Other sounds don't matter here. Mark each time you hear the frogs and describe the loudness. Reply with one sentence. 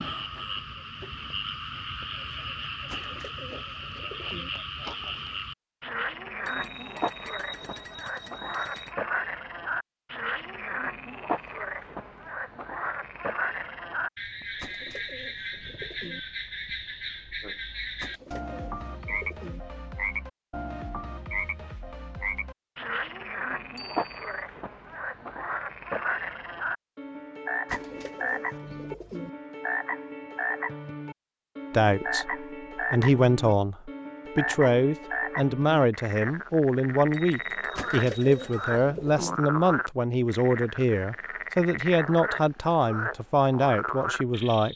You can hear the frogs from 0.0 to 44.7 s, at a steady volume.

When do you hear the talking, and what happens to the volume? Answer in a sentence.
You can hear the talking from 31.7 to 44.7 s, at a steady volume.